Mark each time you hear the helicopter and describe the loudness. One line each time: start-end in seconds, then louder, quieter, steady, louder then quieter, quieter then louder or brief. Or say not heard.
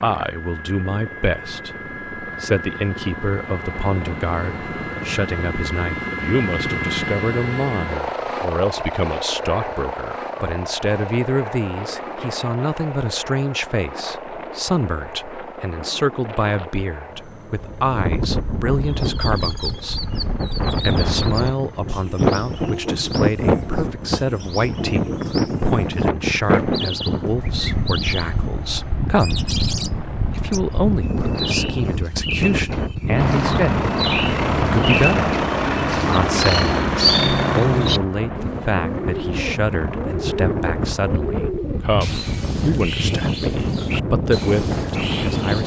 0.0-30.8 quieter
33.1-41.2 quieter.